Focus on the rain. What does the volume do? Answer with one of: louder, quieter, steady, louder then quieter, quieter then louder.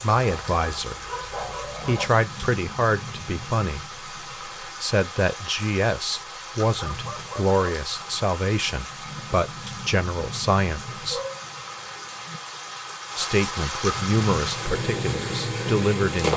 louder.